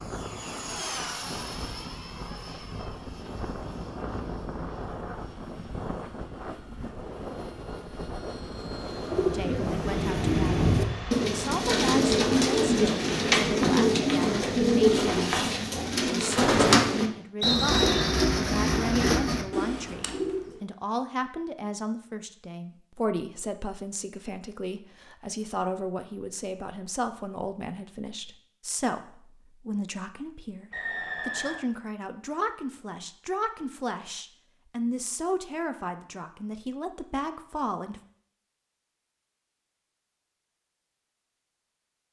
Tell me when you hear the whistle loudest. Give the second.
18 s.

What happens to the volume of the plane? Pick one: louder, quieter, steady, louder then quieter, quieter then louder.
steady.